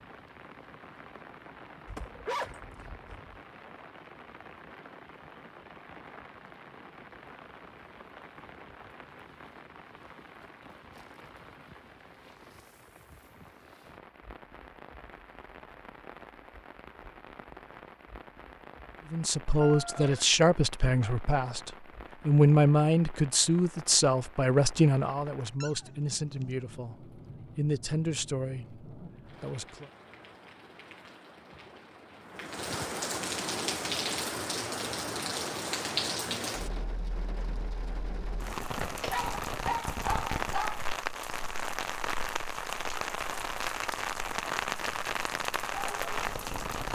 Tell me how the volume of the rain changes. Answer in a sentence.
The volume of the rain goes up.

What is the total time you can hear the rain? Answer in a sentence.
You can hear the rain for 47 seconds altogether.